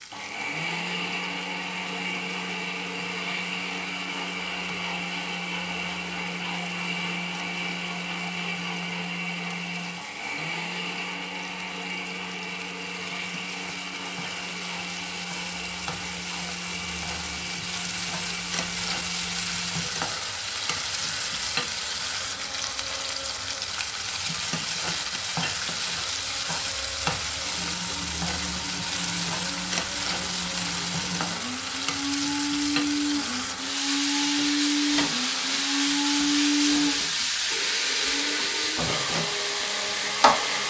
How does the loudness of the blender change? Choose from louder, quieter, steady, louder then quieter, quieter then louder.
quieter then louder.